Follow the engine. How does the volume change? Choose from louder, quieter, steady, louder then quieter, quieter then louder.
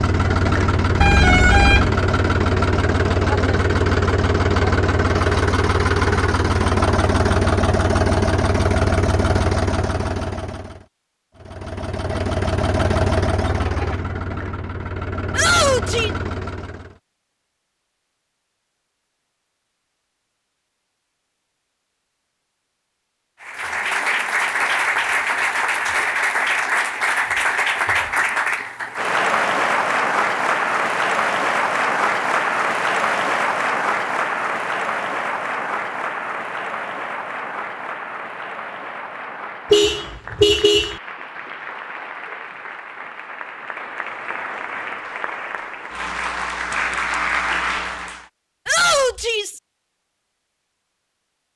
quieter.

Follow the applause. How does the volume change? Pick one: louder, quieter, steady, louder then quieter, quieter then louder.
quieter then louder.